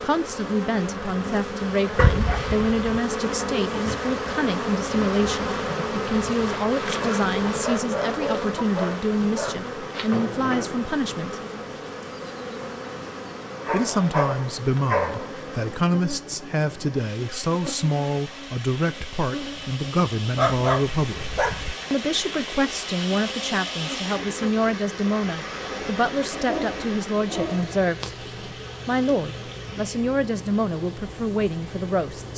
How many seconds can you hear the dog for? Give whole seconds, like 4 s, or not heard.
8 s.